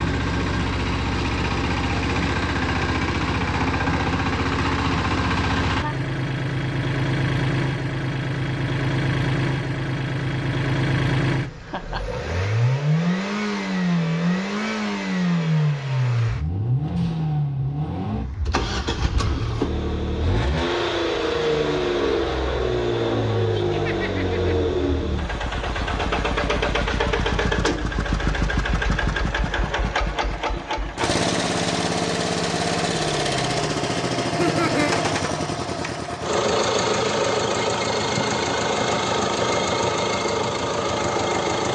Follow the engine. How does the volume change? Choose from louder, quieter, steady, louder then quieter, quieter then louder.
steady.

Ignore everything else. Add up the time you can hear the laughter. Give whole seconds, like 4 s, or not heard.
2 s.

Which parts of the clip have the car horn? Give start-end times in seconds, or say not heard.
not heard.